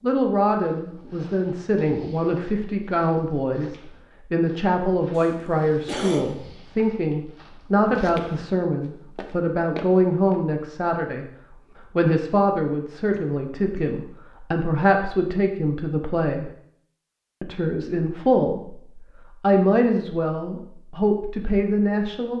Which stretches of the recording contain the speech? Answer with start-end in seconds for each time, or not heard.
0.0-11.2, 11.9-16.5, 17.4-22.3.